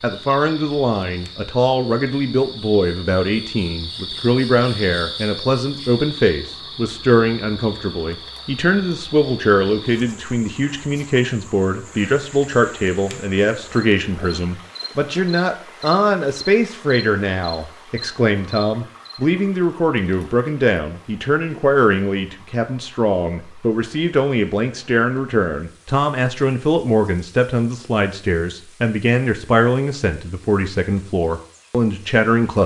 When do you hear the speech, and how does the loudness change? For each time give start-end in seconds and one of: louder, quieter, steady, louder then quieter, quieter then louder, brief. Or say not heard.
0.0-32.6 steady.